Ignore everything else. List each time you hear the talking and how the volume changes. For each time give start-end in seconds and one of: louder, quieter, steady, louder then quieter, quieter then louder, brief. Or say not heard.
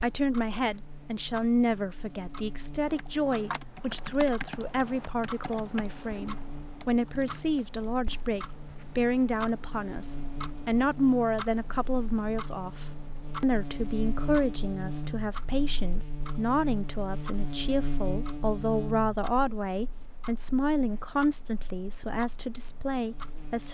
0.0-23.6 steady.